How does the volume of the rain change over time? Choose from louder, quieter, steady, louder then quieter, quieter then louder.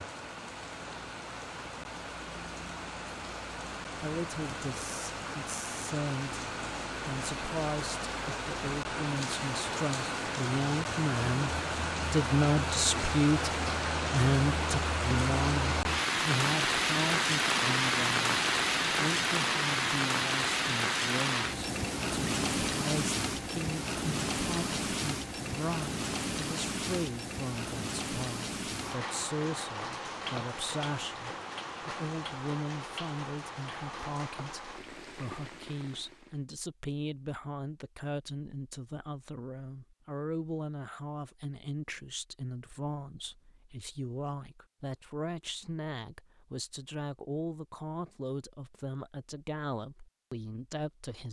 louder then quieter.